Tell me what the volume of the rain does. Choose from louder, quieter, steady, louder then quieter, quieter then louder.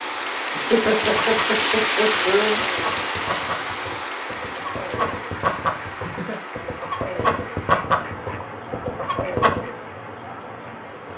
quieter.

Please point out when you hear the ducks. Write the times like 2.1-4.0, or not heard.
0.8-9.7.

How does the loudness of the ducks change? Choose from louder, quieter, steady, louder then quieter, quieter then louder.
louder.